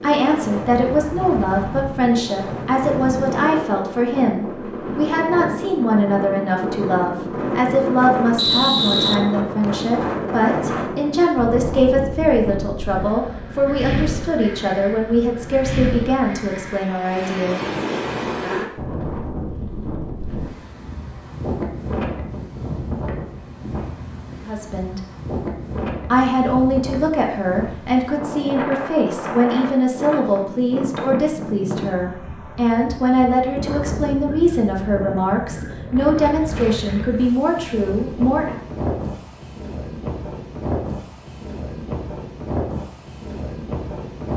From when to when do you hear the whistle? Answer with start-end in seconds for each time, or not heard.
8.3-9.8.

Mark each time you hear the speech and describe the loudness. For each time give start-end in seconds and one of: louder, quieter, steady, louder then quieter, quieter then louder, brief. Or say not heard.
0.0-17.6 steady
24.4-25.0 brief
26.1-38.5 steady.